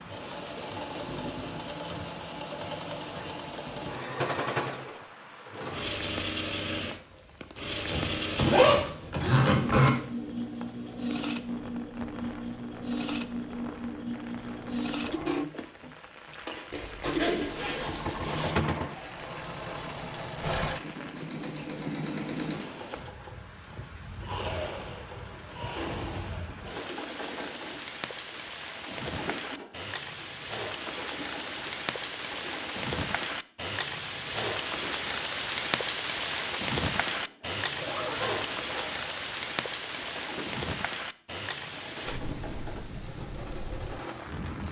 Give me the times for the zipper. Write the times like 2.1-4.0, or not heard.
7.9-9.9, 16.7-18.6, 37.8-39.2.